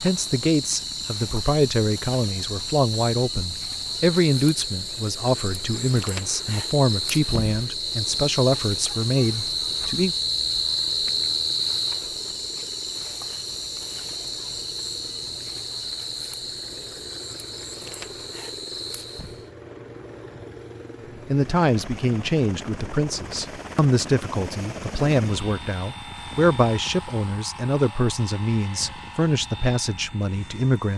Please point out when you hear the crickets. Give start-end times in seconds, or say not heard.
0.0-19.5.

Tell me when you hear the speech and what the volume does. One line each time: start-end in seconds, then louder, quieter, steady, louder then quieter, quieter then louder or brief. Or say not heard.
0.0-10.2 steady
21.2-30.9 steady.